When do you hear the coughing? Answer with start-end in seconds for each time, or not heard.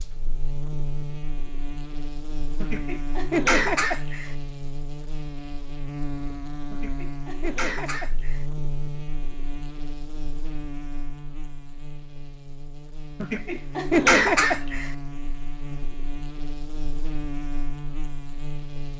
2.6-4.3, 6.7-8.4, 13.2-14.9.